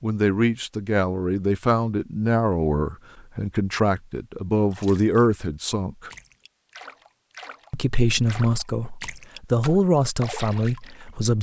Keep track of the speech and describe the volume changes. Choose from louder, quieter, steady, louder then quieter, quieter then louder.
steady.